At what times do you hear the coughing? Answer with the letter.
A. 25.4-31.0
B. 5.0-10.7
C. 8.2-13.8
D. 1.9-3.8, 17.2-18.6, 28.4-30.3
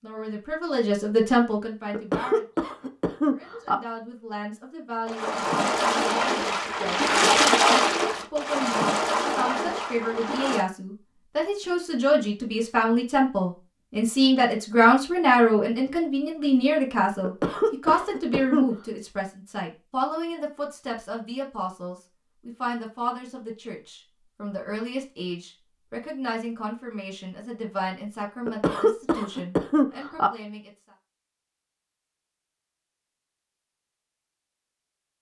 D.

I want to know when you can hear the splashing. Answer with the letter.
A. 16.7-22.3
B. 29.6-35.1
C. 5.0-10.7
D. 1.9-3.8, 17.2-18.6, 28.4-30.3
C.